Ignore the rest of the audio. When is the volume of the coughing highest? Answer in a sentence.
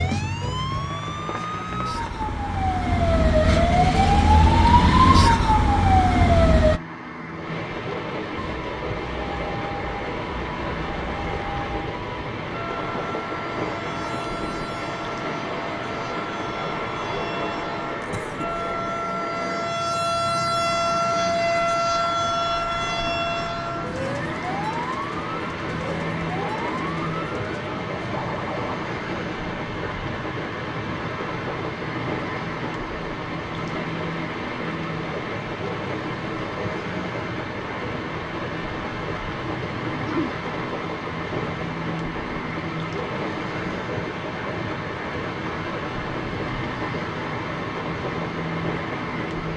The loudest moment of the coughing is at 40 seconds.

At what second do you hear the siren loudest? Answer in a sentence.
The volume of the siren peaks at 5 seconds.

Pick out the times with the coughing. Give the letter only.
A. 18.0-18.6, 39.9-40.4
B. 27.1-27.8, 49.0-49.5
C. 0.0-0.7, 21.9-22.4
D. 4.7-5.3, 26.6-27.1
A.